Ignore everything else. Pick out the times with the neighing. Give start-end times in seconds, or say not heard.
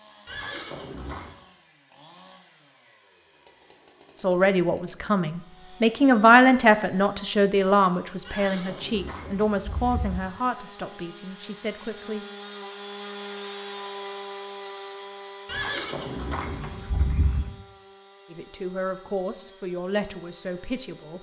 0.2-1.4, 8.2-10.2, 15.4-17.5.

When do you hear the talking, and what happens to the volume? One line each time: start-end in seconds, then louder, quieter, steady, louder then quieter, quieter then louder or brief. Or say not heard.
4.2-12.2 louder then quieter
18.3-21.1 brief.